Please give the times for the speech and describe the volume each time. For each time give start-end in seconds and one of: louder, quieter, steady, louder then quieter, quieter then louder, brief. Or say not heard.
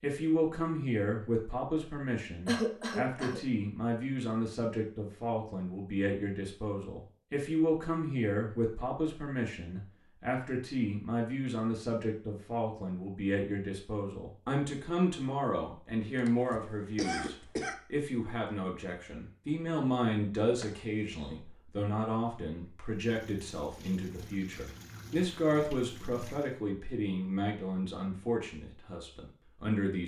0.0-30.0 steady.